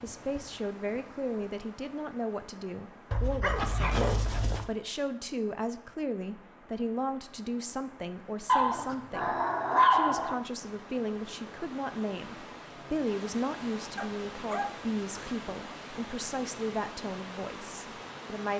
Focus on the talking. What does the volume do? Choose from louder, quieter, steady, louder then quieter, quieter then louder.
steady.